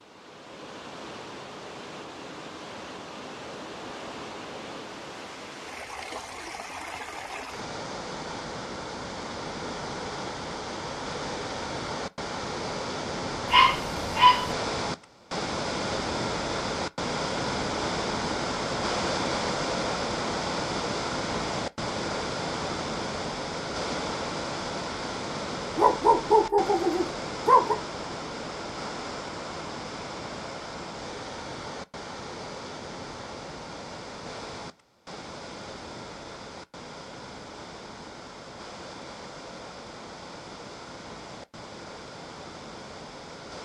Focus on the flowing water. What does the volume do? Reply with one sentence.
The volume of the flowing water goes up, then down.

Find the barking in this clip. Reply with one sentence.
The barking can be heard from 13.4 to 14.6 s and from 25.8 to 27.8 s.